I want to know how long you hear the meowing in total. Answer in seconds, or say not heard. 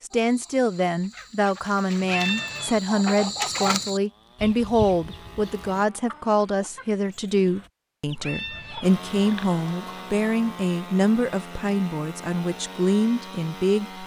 2 s.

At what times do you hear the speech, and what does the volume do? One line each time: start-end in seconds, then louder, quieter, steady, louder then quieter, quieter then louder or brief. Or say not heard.
0.0-14.0 steady.